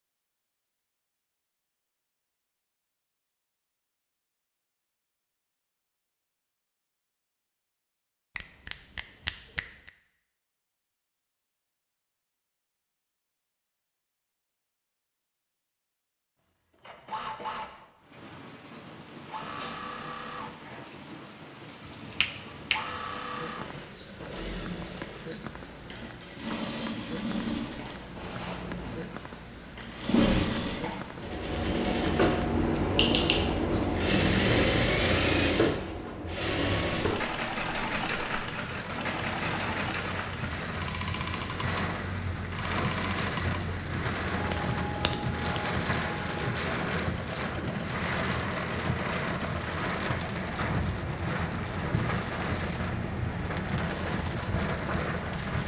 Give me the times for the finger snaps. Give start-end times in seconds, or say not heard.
8.3-9.9, 21.9-23.1, 44.4-45.5.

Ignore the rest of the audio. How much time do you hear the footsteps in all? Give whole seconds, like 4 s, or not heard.
not heard.